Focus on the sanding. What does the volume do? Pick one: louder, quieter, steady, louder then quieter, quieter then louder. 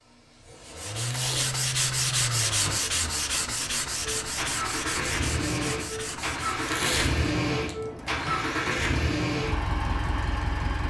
quieter.